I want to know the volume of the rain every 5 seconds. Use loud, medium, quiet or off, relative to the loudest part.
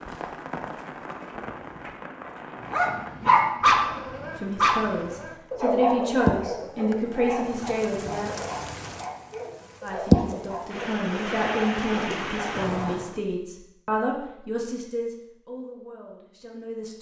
quiet, medium, loud, off.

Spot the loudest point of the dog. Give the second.
4 s.